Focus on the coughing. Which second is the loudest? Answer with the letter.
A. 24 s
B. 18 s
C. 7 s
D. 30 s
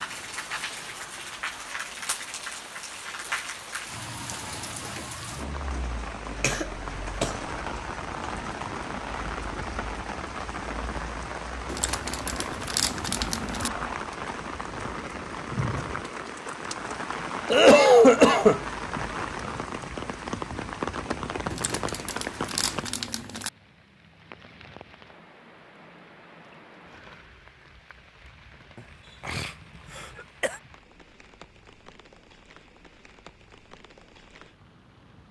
B.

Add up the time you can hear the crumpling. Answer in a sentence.
The crumpling can be heard for 4 seconds in total.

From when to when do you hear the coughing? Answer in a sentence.
You can hear the coughing from 6.4 to 7.3 s, from 17.5 to 18.6 s and from 28.8 to 30.6 s.